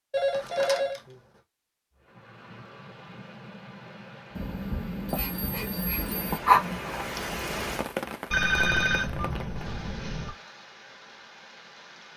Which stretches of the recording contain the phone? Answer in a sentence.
The phone can be heard from 0.1 to 1.0 s, from 4.3 to 6.4 s and from 8.3 to 10.3 s.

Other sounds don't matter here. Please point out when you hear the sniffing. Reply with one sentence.
The sniffing can be heard from 5.2 to 6.9 s.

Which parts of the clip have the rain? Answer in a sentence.
The rain can be heard from 1.9 to 12.1 s.